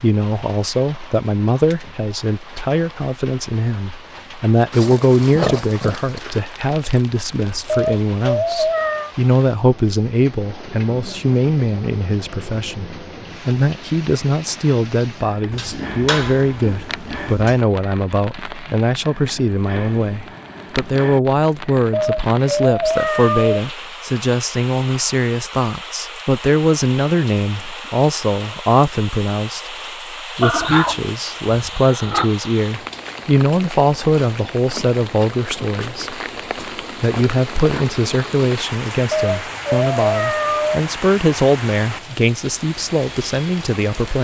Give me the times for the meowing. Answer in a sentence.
You can hear the meowing from 7.7 to 9.1 s, from 21.9 to 23.6 s and from 39.1 to 40.8 s.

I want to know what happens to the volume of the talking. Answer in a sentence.
The volume of the talking stays about the same.